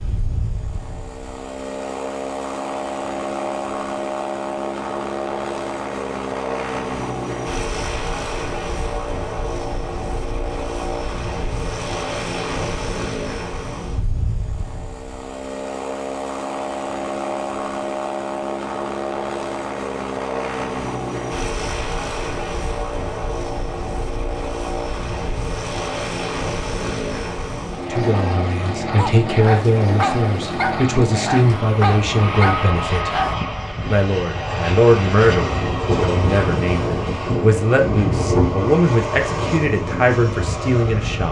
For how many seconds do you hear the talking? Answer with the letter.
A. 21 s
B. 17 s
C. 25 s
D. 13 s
D.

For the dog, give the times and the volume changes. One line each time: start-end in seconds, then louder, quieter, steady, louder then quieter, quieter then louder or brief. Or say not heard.
28.9-33.4 steady.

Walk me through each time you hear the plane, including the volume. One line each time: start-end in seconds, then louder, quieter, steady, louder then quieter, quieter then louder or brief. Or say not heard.
0.0-41.2 steady.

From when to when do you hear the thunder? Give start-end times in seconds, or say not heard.
35.2-38.7.